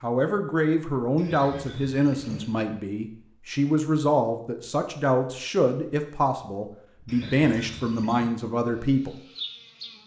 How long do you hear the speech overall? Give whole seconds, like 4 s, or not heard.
9 s.